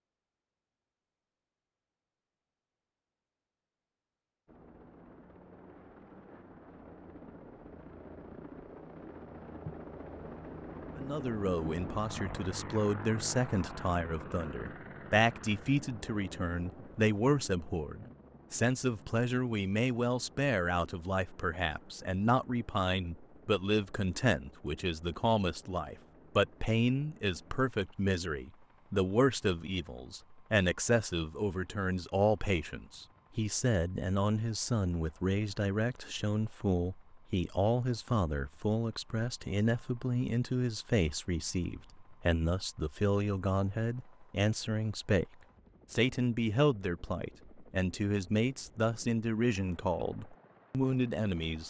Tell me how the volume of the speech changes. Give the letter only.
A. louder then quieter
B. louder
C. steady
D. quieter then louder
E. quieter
C.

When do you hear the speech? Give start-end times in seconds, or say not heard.
10.9-45.2, 45.9-51.6.